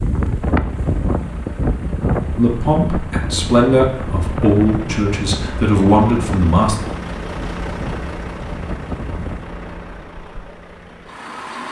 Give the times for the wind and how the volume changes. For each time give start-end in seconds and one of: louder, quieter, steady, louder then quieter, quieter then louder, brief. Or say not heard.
0.0-9.6 quieter.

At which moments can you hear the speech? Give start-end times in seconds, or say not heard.
2.4-6.8.